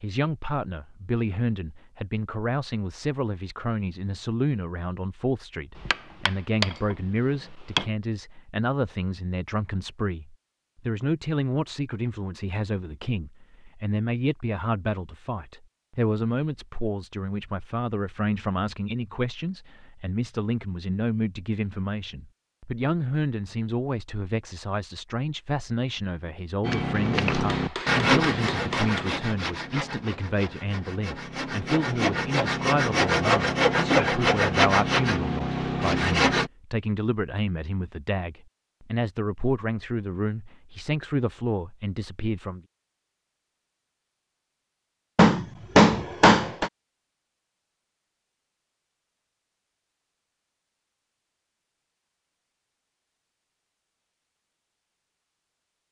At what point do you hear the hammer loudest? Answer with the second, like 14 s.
46 s.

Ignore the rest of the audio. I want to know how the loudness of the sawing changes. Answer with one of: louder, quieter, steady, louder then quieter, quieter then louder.
quieter then louder.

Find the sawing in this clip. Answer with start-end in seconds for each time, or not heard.
26.6-36.5.